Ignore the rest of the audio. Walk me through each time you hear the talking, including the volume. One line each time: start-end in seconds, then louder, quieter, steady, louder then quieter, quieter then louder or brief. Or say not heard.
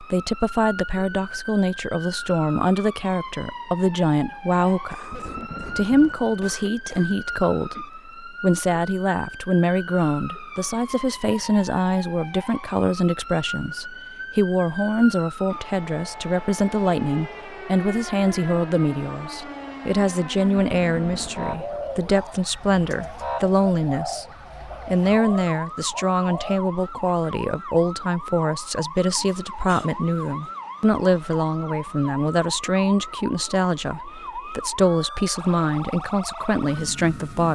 0.0-24.2 steady
24.9-37.5 steady.